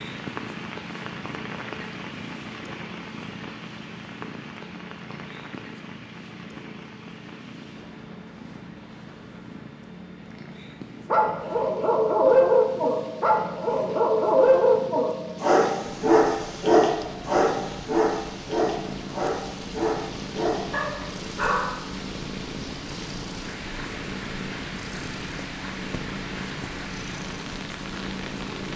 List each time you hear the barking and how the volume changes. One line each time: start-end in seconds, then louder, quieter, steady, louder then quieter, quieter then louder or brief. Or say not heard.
11.1-21.7 quieter.